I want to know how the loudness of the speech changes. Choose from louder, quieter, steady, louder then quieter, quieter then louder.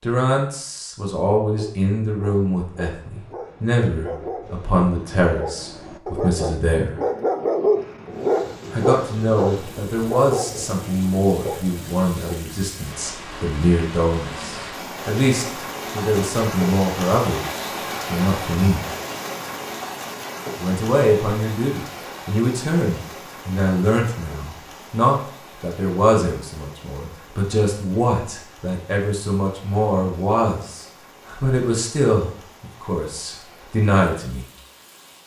steady.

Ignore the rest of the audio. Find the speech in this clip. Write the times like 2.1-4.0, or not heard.
0.0-6.9, 8.7-18.9, 20.6-34.5.